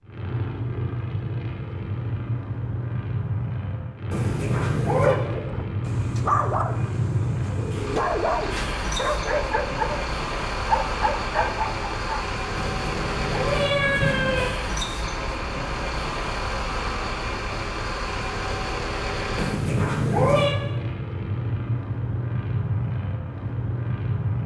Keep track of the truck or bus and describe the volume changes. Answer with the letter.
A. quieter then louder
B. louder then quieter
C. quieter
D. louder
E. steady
E.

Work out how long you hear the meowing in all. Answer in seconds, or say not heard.
4 s.